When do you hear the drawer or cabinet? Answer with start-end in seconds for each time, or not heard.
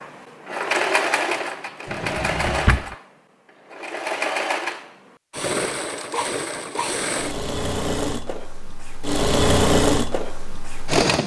1.9-3.0.